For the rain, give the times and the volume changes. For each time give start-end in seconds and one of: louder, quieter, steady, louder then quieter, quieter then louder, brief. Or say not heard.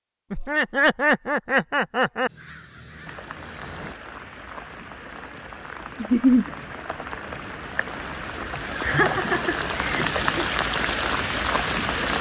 3.0-12.1 louder.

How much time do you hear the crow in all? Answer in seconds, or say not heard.
2 s.